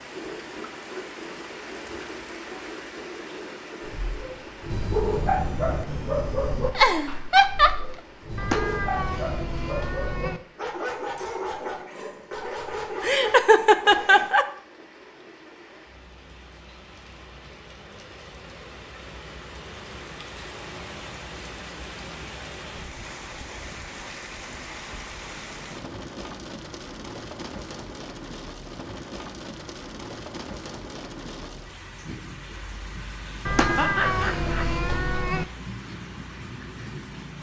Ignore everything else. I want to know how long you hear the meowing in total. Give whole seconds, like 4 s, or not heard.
4 s.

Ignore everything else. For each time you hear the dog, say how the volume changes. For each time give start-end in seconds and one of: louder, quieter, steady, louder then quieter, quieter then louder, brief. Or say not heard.
3.9-14.3 quieter.